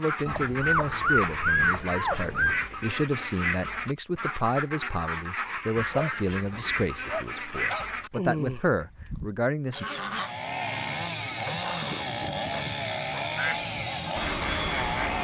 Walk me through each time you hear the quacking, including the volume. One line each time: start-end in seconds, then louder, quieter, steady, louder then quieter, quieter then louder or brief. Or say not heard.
0.0-10.3 steady
13.3-15.1 brief.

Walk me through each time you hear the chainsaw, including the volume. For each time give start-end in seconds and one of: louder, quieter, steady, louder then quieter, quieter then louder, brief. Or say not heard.
10.1-15.1 steady.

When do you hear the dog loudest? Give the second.
2 s.